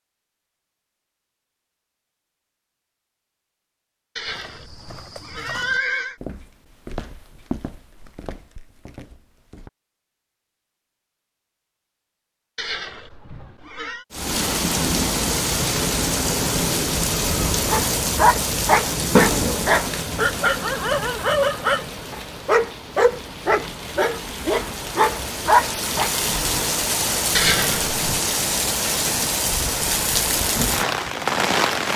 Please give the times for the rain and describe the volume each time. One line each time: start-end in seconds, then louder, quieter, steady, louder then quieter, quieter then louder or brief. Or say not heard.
14.1-31.9 quieter then louder.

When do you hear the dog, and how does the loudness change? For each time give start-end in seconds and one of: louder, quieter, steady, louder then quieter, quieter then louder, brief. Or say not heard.
17.6-26.1 steady.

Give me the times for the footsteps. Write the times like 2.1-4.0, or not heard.
4.2-9.7.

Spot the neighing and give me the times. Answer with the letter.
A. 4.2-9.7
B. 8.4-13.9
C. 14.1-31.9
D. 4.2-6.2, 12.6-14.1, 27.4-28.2
D.